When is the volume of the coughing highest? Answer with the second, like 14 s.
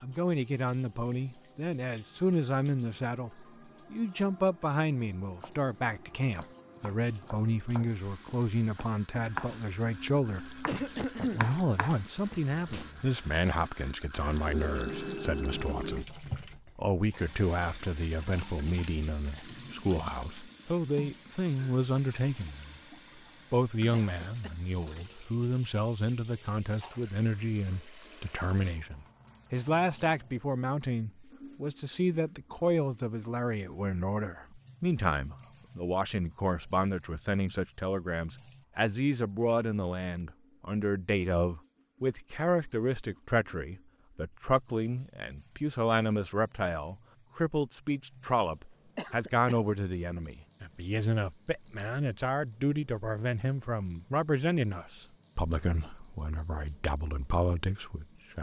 11 s.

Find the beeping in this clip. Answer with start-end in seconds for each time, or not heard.
14.4-16.1.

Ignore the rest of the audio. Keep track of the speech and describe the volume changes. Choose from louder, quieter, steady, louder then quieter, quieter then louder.
steady.